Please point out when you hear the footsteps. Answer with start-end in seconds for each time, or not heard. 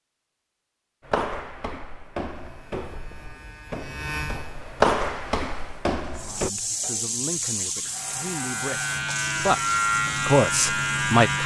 1.1-6.5.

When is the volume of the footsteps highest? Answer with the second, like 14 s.
5 s.